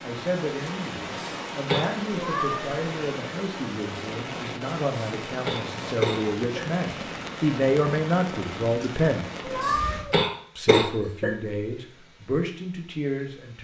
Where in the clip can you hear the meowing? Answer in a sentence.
The meowing can be heard from 2.1 to 2.8 s and from 9.4 to 10.2 s.